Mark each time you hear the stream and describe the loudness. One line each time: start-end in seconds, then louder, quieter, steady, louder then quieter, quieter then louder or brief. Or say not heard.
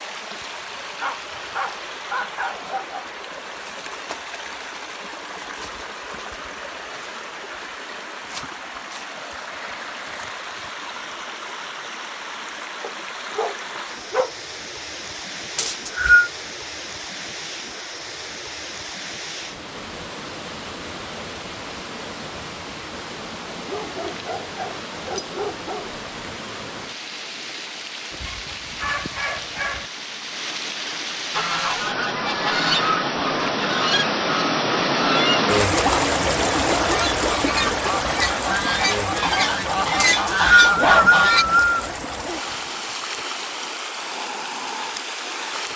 0.0-45.7 louder.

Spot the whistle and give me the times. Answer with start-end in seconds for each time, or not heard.
15.6-16.3, 40.0-41.9.